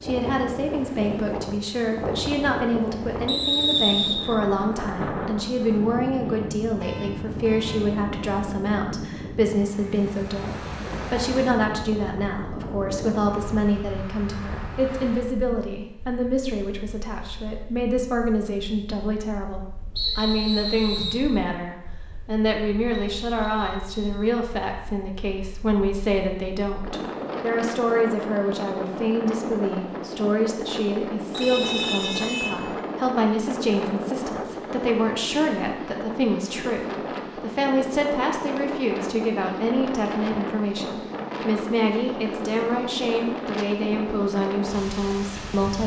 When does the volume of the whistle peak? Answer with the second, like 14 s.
4 s.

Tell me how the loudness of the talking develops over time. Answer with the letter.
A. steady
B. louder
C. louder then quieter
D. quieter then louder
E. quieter
A.